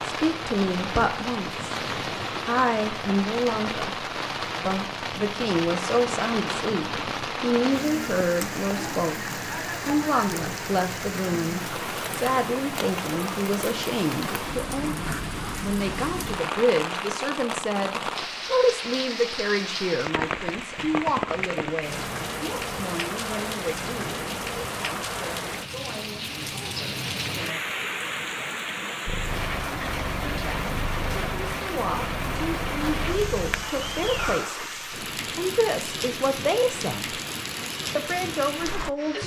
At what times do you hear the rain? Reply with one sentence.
The rain can be heard from 0.0 to 39.2 s.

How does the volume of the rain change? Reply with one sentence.
The loudness of the rain stays about the same.